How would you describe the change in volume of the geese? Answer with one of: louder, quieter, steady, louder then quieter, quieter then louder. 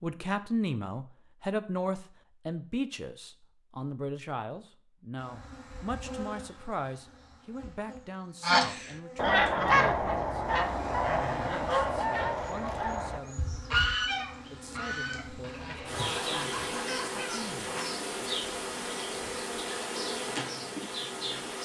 quieter.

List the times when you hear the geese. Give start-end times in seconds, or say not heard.
8.4-17.9.